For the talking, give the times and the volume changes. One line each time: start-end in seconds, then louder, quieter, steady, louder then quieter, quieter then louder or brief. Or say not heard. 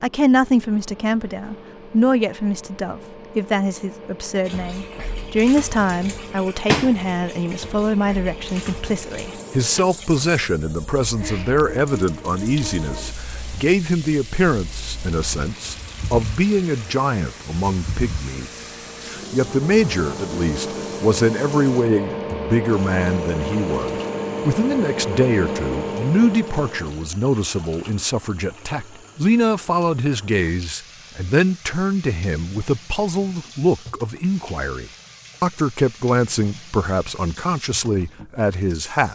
0.0-39.0 steady.